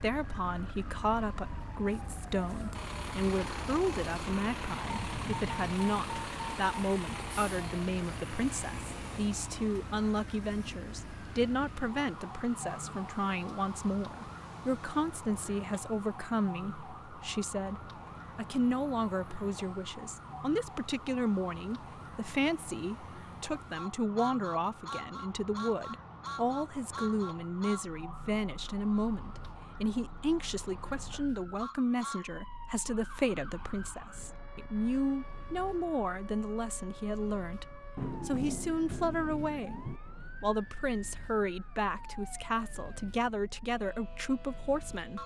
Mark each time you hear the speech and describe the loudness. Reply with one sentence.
You can hear the speech from 0.0 to 45.2 s, at a steady volume.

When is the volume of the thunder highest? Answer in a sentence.
The volume of the thunder peaks at 38 seconds.